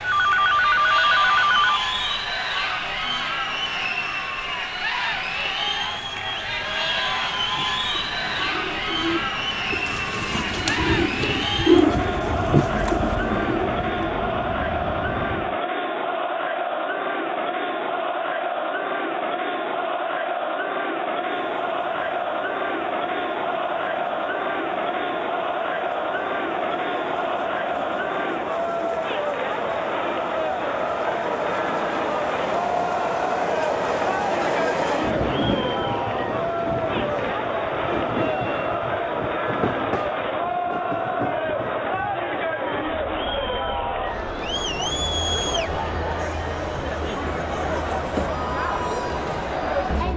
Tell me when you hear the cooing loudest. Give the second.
12 s.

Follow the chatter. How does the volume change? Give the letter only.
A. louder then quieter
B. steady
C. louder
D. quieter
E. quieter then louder
B.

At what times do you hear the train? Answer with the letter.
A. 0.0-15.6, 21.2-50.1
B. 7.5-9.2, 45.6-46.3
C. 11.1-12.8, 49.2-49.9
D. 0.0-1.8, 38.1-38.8
A.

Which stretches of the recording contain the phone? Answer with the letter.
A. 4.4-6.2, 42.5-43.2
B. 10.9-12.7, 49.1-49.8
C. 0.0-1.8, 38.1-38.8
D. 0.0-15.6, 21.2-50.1
C.